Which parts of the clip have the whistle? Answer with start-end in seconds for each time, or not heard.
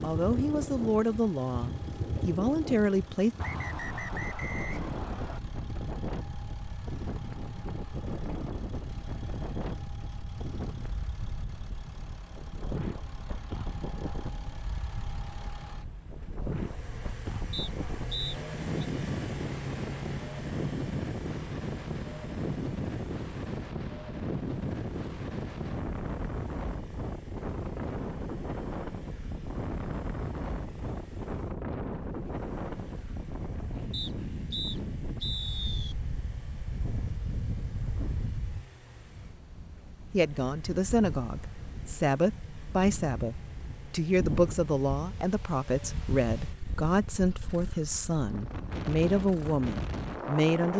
3.4-5.4, 17.5-18.9, 33.9-36.0.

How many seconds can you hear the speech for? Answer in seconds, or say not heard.
14 s.